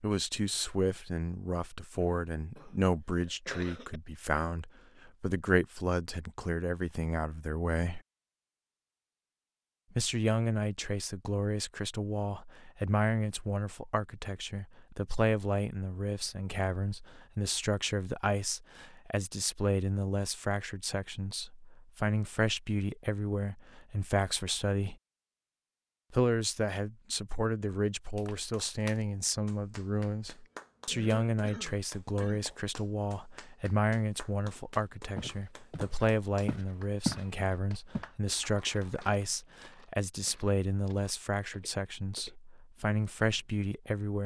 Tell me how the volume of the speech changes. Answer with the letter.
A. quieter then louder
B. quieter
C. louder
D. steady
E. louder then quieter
D.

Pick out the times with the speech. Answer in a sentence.
You can hear the speech from 0.0 to 8.0 s, from 9.9 to 24.9 s and from 26.1 to 44.2 s.